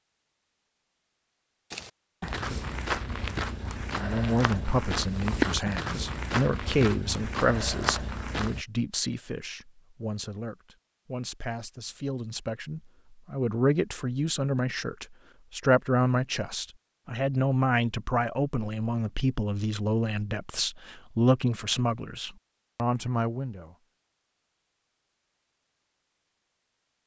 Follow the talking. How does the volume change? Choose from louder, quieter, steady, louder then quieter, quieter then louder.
quieter then louder.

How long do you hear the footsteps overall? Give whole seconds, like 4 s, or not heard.
7 s.